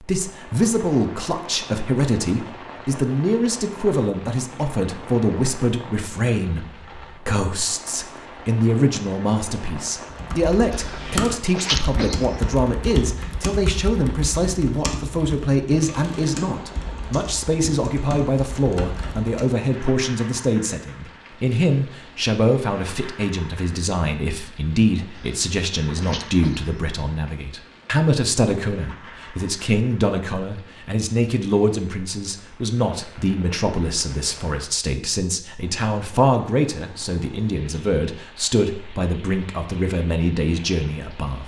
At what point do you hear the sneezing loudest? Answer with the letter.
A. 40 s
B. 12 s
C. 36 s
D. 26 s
B.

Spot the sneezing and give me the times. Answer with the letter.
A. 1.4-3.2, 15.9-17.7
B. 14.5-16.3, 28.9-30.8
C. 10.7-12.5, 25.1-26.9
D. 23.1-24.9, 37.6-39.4
C.